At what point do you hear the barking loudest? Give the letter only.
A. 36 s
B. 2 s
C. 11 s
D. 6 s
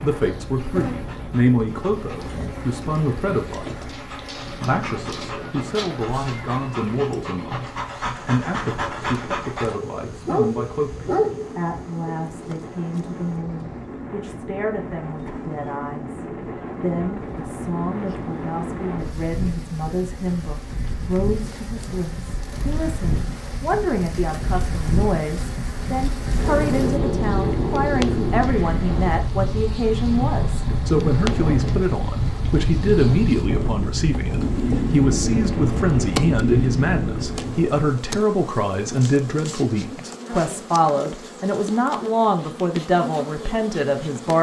C.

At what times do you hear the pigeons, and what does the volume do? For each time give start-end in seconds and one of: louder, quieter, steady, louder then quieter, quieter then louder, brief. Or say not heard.
not heard.